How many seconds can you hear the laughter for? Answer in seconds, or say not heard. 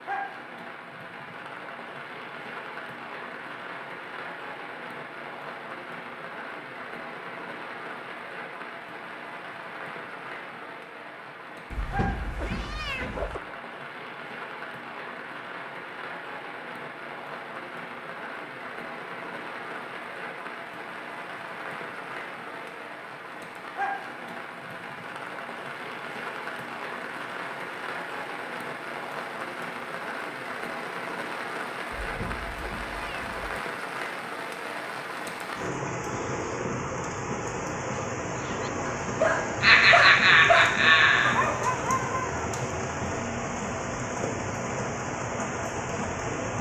2 s.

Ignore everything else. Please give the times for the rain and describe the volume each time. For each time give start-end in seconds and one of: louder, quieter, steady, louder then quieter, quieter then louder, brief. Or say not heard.
0.0-46.5 louder.